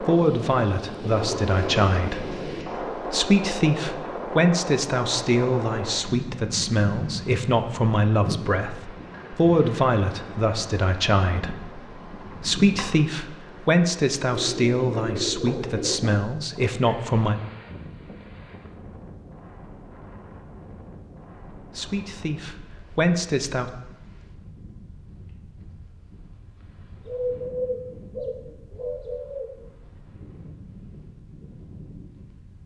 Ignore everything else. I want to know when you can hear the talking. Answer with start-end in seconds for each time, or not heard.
0.0-17.4, 21.6-23.7.